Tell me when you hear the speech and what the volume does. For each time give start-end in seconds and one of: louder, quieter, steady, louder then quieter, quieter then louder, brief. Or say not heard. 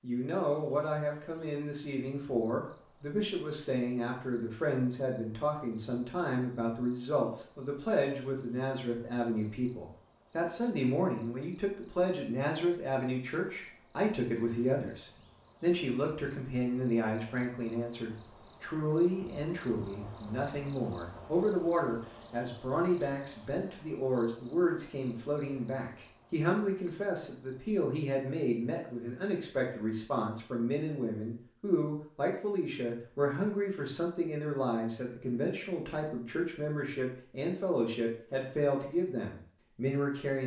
0.0-40.4 steady.